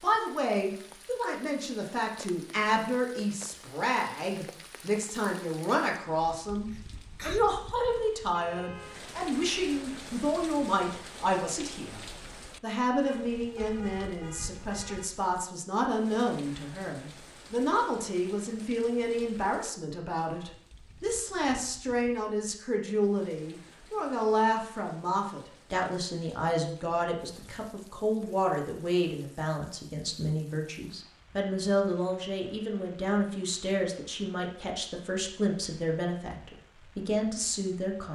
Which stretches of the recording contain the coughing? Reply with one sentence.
The coughing can be heard from 6.7 to 7.5 s.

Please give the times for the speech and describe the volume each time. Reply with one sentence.
You can hear the speech from 0.0 to 38.0 s, at a steady volume.